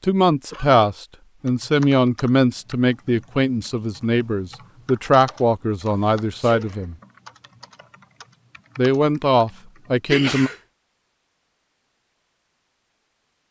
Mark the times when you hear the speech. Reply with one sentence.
The speech can be heard from 0.0 to 7.0 s and from 8.8 to 10.5 s.